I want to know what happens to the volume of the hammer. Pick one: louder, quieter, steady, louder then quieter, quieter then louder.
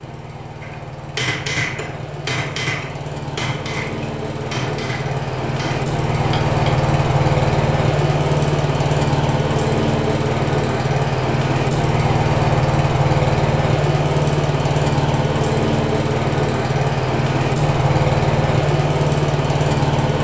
quieter.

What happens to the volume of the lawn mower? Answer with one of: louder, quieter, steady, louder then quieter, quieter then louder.
louder.